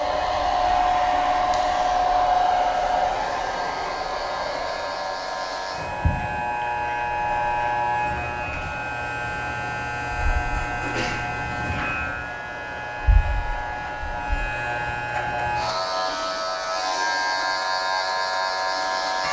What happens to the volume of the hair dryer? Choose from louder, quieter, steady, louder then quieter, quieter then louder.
quieter.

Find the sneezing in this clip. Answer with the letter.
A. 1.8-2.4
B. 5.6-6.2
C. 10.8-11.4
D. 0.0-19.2
C.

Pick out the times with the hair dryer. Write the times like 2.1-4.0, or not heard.
0.0-19.2.